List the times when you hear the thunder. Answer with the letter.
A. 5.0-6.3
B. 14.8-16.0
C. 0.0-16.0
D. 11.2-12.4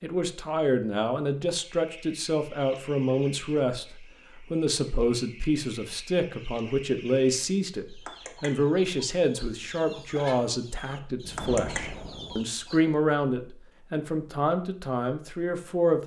D.